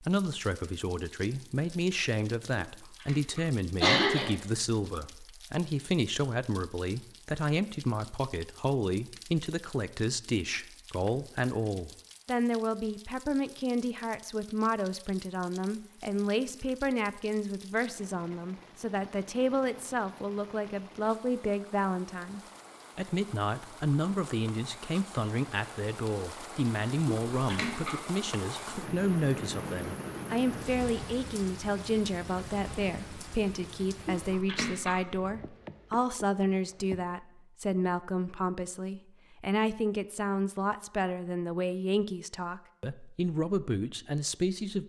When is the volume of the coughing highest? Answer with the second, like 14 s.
4 s.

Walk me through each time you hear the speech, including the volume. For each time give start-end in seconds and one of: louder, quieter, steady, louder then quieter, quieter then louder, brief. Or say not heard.
0.0-44.8 steady.